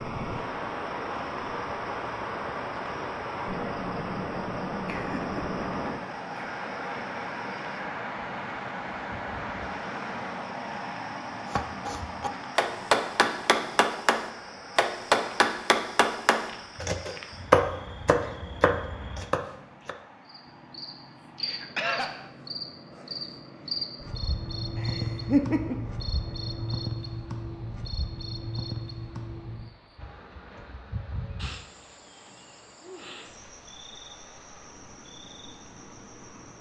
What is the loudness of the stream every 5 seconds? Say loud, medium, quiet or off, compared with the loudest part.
loud, loud, medium, quiet, quiet, quiet, quiet, quiet.